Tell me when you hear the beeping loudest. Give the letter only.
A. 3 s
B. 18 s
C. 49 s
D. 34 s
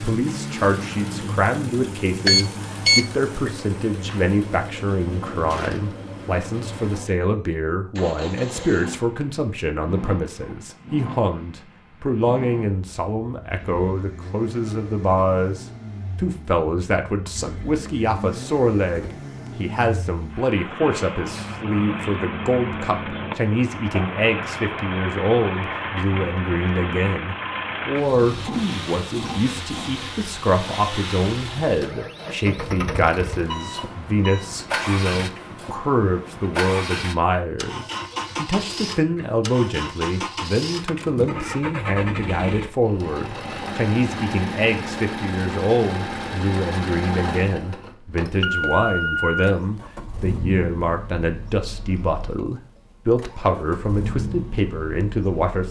A.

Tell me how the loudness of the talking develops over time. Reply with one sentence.
The volume of the talking stays about the same.